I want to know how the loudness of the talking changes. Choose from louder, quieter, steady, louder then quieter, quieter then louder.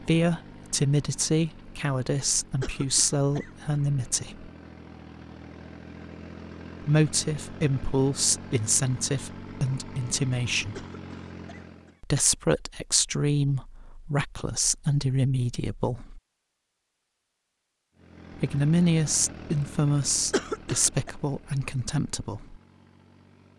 steady.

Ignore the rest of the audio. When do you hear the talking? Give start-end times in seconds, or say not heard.
0.1-4.5, 6.8-10.8, 12.0-16.2, 18.4-22.6.